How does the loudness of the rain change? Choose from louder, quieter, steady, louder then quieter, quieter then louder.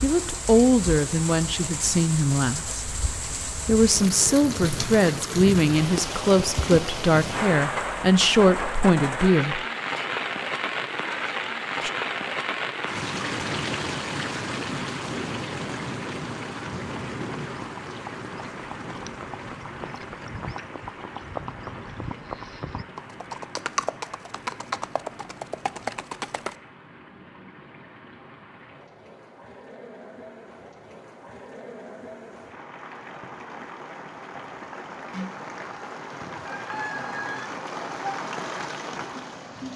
quieter then louder.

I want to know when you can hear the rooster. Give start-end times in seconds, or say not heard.
36.2-37.5.